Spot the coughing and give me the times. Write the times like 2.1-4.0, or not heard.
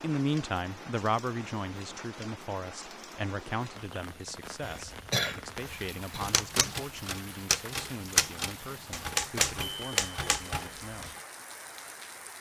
4.6-6.2.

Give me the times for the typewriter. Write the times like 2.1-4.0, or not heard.
6.2-11.2.